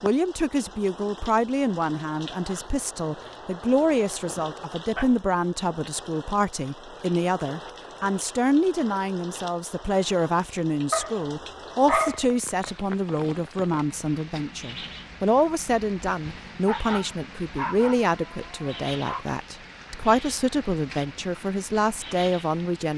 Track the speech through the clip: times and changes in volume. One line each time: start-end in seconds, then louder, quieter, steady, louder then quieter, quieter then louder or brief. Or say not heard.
0.0-22.9 steady.